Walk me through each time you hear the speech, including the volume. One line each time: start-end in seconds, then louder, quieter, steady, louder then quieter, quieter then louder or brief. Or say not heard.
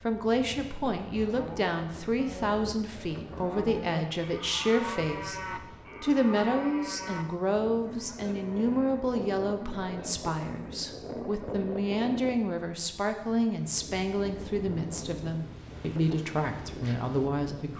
0.0-17.7 steady.